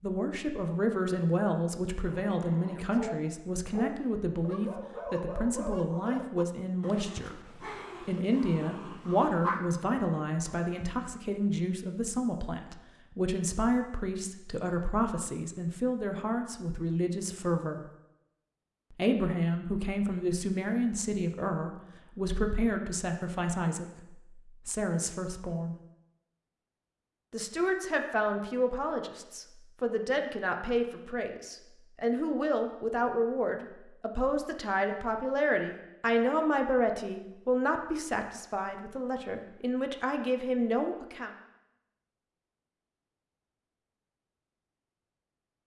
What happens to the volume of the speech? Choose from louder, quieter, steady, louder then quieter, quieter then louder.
steady.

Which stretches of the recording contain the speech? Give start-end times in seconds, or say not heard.
0.0-17.8, 18.9-25.8, 27.3-41.3.